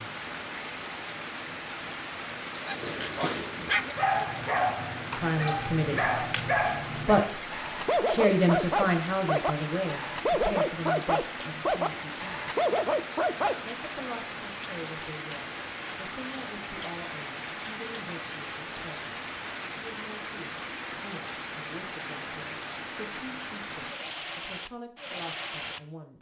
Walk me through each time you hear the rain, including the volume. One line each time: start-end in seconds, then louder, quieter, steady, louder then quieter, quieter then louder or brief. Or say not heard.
0.0-25.8 steady.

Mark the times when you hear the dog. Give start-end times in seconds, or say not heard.
2.6-14.0.